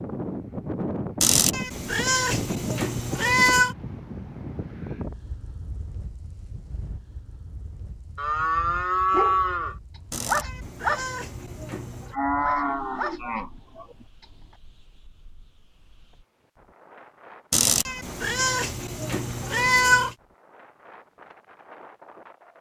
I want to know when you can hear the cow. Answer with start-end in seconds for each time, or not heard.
8.2-9.8, 12.1-13.9.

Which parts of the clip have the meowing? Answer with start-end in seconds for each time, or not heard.
1.2-3.8, 10.1-12.2, 17.5-20.1.